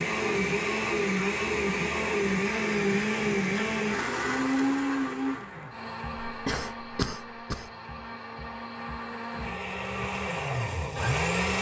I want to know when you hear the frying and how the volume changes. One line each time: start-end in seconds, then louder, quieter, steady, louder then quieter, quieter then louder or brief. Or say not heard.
not heard.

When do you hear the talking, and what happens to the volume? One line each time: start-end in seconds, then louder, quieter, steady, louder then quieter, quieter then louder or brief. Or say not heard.
not heard.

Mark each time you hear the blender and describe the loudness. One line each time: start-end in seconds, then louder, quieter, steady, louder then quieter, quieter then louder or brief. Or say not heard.
0.0-11.5 quieter then louder.